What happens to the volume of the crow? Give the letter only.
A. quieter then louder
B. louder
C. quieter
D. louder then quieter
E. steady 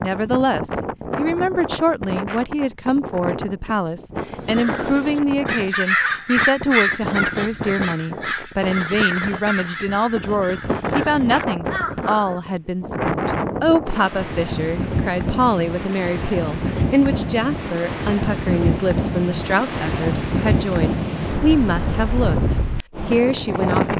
C.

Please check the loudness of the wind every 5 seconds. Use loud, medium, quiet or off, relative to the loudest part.
medium, medium, loud, loud, loud.